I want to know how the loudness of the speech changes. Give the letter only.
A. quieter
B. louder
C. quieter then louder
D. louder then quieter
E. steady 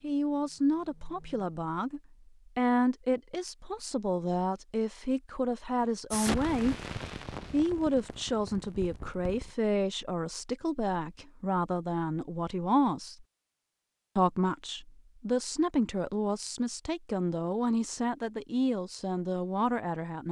E.